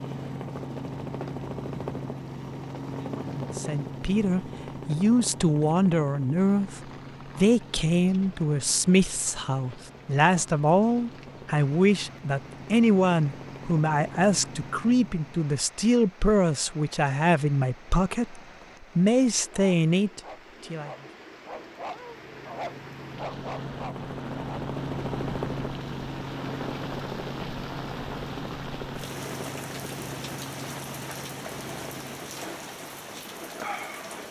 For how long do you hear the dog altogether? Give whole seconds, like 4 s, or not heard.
5 s.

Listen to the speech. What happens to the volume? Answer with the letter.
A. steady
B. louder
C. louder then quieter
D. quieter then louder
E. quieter
A.